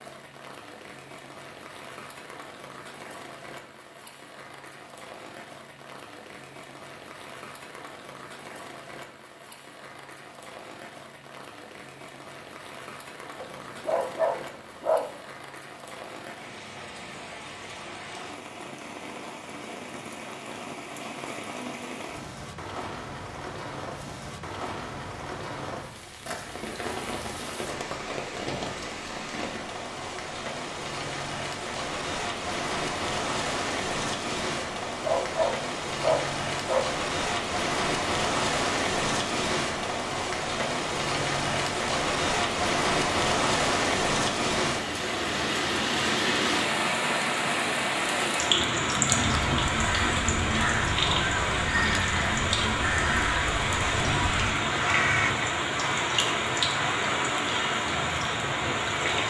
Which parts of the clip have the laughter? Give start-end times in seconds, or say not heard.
not heard.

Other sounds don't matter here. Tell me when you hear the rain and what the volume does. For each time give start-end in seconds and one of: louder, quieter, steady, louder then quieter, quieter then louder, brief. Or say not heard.
0.0-59.2 louder.